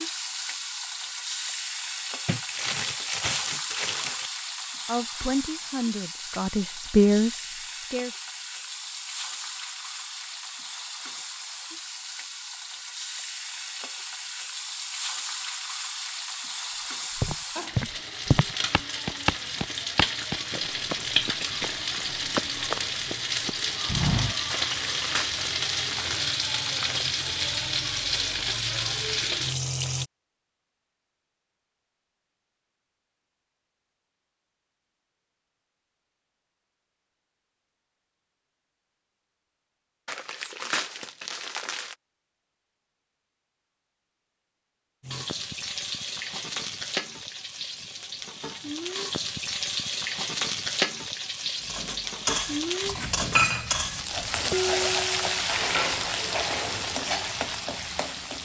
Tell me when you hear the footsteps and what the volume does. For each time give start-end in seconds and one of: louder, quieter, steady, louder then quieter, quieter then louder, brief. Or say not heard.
17.1-24.4 quieter.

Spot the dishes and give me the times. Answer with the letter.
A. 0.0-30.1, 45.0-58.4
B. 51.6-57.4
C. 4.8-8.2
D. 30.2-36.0
B.